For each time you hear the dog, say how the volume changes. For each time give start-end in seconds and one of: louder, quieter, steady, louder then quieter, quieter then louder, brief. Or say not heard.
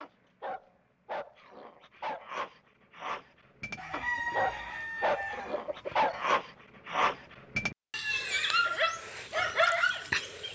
0.0-10.5 louder.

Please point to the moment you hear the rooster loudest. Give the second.
4 s.